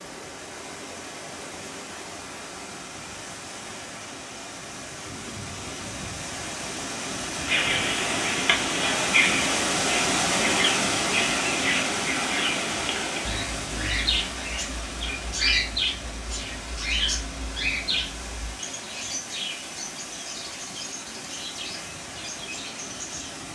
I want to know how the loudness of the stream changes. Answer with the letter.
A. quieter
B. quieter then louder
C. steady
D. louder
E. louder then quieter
E.